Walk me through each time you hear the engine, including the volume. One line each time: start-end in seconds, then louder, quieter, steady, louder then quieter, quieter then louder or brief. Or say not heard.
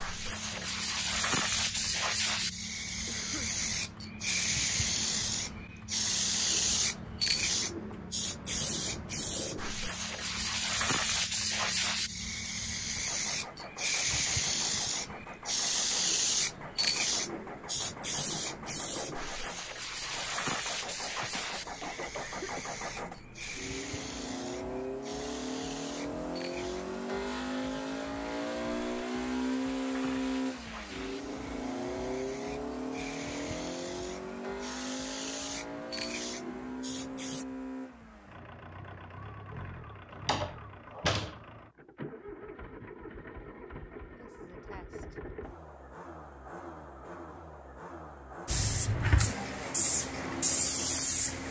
0.0-51.4 louder then quieter.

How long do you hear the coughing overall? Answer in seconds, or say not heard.
3 s.